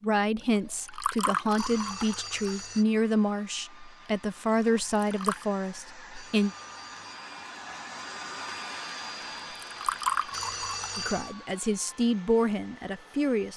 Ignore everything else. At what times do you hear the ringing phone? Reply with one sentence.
You can hear the ringing phone from 1.6 to 2.9 s, from 6.1 to 7.2 s and from 10.3 to 11.3 s.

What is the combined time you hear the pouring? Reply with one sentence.
The pouring can be heard for 4 seconds in total.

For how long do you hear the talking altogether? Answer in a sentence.
You can hear the talking for 9 seconds altogether.